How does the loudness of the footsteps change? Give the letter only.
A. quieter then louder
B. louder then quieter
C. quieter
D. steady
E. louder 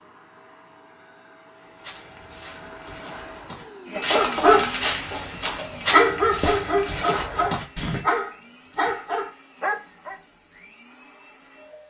E.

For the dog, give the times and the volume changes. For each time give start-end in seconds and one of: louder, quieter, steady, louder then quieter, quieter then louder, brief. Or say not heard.
4.1-10.2 quieter.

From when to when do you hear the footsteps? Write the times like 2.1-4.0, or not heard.
1.8-8.0.